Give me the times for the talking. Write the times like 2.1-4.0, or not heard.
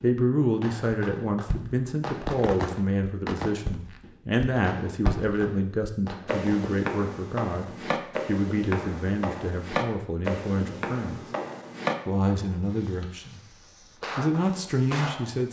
0.0-11.2, 12.1-15.4.